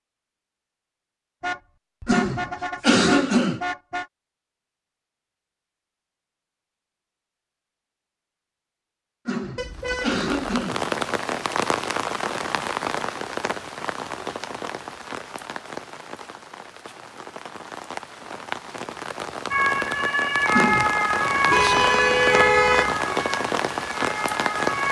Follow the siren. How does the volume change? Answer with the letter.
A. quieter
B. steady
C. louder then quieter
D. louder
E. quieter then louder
A.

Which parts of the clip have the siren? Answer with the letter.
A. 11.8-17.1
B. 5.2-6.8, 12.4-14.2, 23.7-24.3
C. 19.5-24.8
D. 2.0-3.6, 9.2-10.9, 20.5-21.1
C.